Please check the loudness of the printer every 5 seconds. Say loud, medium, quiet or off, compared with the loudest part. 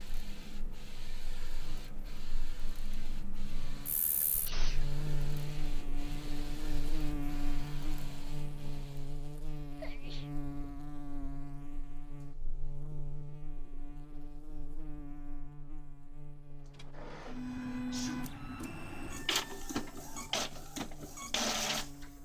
quiet, quiet, off, loud, loud.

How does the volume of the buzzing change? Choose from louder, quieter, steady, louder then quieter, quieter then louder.
quieter.